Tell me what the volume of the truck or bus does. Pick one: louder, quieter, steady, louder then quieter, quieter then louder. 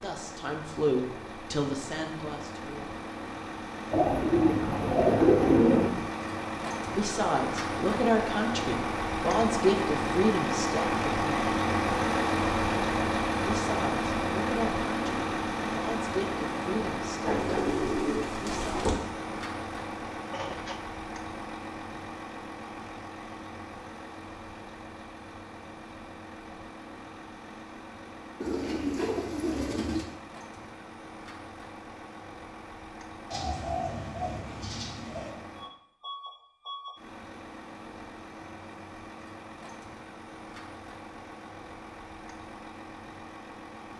louder then quieter.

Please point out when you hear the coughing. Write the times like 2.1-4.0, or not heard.
20.3-20.9.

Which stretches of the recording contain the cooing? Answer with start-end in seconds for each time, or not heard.
3.9-6.0, 17.2-18.9, 28.4-30.1, 33.3-35.3.